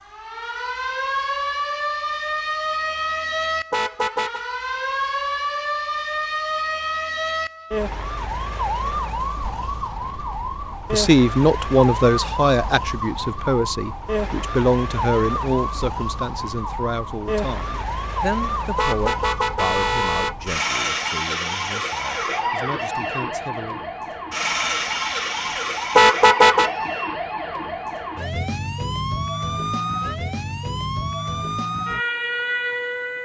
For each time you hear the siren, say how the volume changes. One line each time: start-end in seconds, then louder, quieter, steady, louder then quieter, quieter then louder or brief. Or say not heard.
0.0-33.2 steady.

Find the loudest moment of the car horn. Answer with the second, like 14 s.
26 s.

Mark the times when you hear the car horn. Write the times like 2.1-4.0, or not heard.
3.7-4.5, 18.8-20.4, 25.9-26.7.